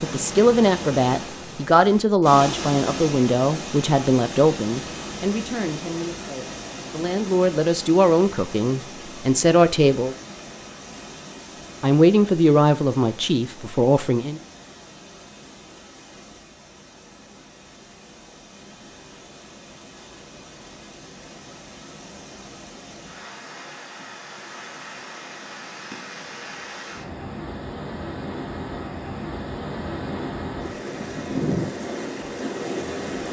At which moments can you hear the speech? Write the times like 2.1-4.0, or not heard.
0.0-10.2, 11.8-14.4.